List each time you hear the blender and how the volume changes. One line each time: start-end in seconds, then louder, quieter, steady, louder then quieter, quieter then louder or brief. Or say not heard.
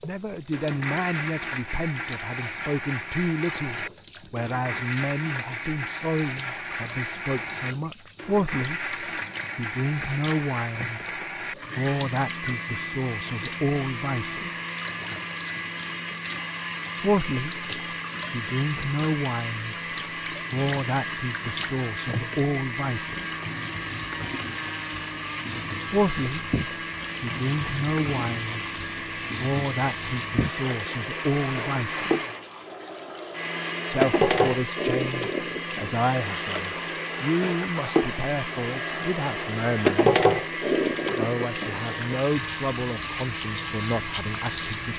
0.0-44.9 steady.